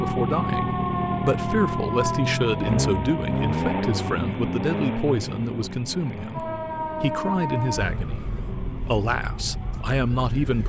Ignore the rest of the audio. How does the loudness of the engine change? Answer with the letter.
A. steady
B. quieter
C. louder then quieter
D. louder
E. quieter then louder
B.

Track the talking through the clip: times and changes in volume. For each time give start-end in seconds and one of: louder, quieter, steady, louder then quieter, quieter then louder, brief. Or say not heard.
0.0-10.6 steady.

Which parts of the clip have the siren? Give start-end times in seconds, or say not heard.
0.0-4.2, 6.3-10.6.